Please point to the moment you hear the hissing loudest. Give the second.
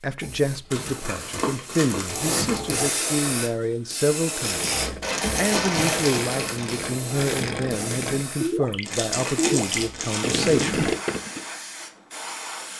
3 s.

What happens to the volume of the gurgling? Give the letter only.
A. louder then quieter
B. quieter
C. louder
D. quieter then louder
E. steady
C.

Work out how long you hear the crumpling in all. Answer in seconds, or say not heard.
6 s.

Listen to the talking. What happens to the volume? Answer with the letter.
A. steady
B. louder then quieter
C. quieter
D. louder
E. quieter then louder
A.